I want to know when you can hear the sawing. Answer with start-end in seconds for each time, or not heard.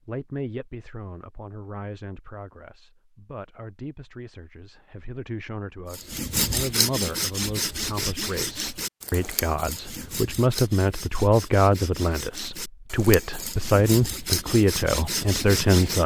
5.9-16.0.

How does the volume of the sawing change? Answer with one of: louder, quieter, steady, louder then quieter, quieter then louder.
quieter then louder.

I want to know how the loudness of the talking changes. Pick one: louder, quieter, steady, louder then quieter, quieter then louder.
louder.